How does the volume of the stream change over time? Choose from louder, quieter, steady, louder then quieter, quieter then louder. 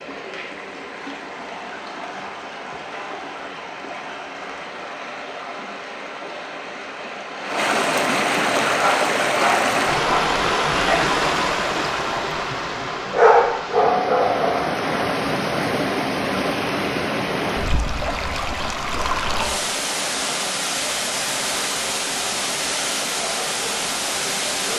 louder.